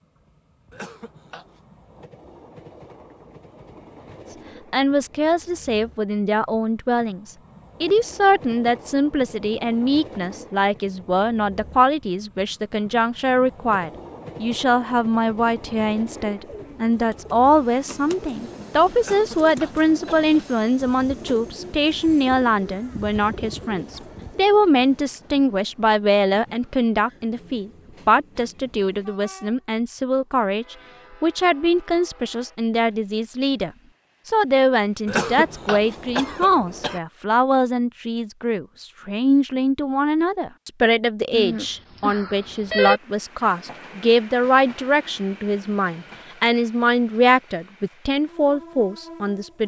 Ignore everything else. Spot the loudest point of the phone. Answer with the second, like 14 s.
43 s.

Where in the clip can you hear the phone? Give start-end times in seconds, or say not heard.
41.3-43.0.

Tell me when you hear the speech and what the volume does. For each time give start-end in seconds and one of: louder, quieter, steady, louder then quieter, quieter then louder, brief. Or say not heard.
4.3-49.6 steady.